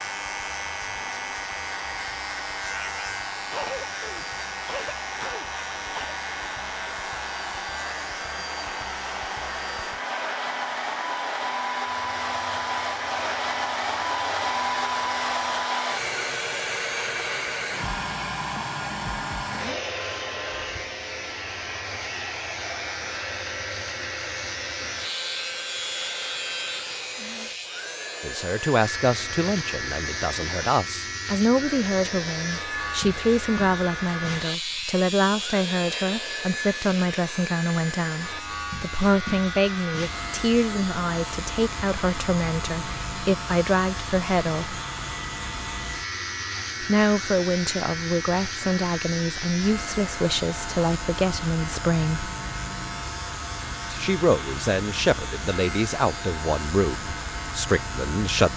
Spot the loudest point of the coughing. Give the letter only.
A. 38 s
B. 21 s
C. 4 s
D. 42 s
C.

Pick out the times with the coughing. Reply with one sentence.
The coughing can be heard from 3.5 to 6.2 s.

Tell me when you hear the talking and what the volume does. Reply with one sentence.
You can hear the talking from 28.2 to 44.8 s, at a steady volume; from 46.8 to 52.3 s, at a steady volume; and from 53.9 to 58.5 s, at a steady volume.